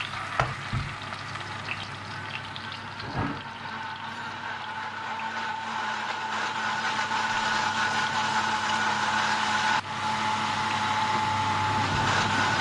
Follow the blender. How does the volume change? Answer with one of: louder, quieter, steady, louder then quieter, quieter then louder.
louder.